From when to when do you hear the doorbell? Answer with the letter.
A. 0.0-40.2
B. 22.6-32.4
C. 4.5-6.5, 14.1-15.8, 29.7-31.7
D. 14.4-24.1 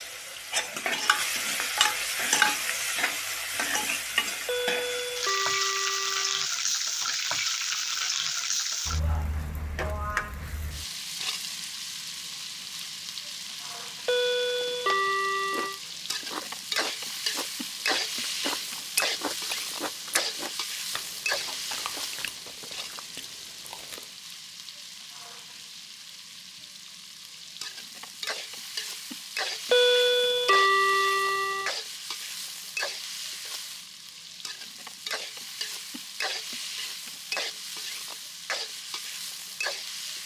C.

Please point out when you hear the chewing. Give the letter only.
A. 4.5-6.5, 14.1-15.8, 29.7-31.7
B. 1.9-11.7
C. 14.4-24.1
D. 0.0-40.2
C.